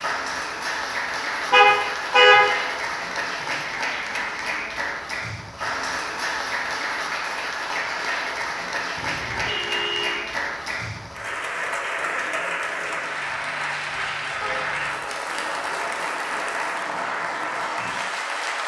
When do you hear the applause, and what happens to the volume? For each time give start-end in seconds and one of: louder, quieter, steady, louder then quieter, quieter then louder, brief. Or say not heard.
0.0-18.6 steady.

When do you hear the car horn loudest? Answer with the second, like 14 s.
2 s.